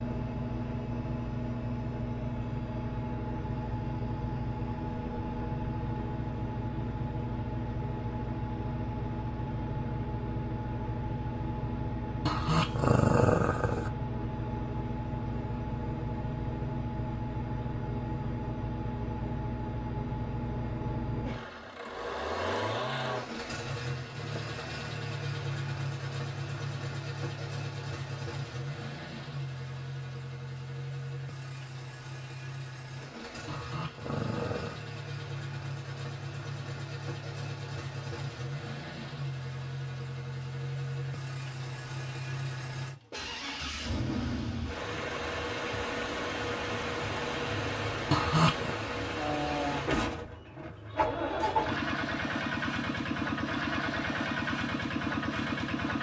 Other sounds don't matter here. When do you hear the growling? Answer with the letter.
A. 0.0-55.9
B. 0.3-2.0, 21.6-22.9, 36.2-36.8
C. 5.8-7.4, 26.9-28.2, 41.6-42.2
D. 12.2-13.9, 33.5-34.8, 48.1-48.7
D.